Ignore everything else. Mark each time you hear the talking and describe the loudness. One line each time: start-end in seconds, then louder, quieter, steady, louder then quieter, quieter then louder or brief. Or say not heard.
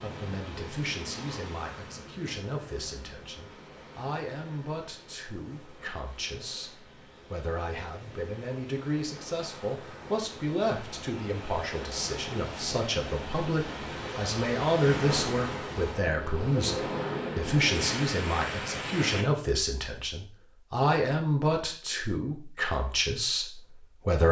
0.0-24.2 louder.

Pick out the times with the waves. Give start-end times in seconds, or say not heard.
0.0-19.4.